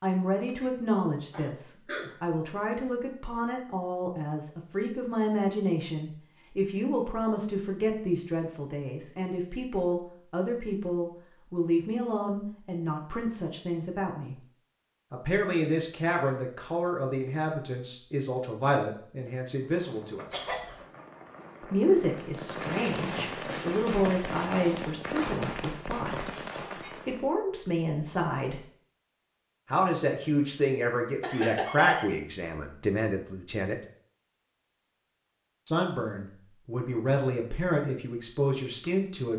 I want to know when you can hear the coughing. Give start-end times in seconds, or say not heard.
1.3-2.1, 20.3-20.9, 31.2-32.1.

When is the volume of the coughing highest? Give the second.
32 s.